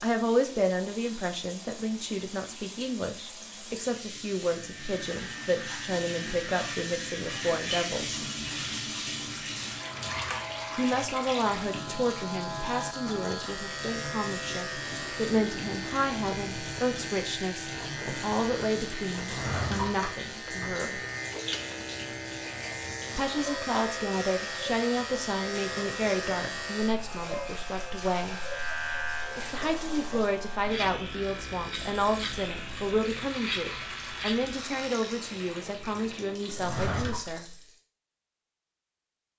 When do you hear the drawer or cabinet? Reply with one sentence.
The drawer or cabinet can be heard from 9.9 to 10.6 s, from 19.2 to 20.8 s and from 36.5 to 37.2 s.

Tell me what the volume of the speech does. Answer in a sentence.
The volume of the speech stays about the same.